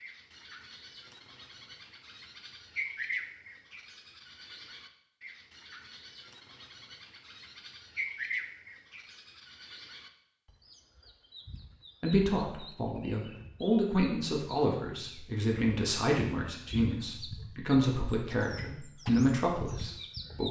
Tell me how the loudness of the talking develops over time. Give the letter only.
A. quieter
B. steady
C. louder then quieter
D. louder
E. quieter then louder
B.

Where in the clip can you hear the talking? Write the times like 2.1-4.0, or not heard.
12.0-20.4.